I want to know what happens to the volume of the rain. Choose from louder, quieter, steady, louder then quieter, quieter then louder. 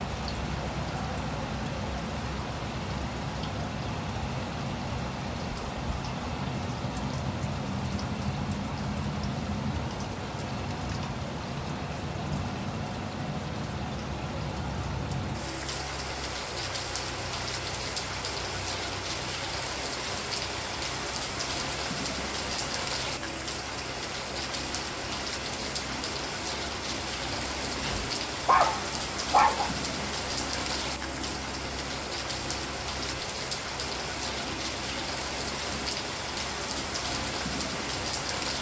steady.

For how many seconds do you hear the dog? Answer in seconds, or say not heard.
2 s.